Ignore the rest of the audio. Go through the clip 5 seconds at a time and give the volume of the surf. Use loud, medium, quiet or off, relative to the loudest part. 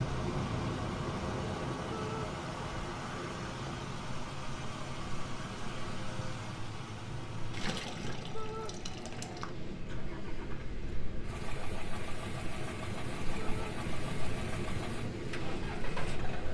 loud, medium, loud, loud.